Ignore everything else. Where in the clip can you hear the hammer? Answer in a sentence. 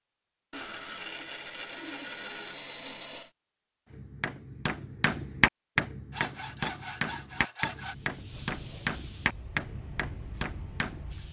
You can hear the hammer from 3.9 to 11.1 s.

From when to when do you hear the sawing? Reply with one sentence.
You can hear the sawing from 0.5 to 3.3 s and from 6.1 to 8.0 s.